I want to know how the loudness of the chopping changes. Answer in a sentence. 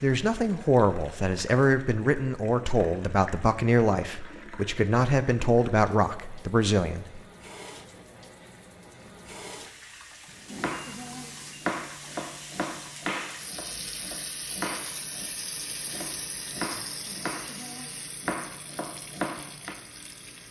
The loudness of the chopping stays about the same.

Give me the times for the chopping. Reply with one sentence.
The chopping can be heard from 10.5 to 19.8 s.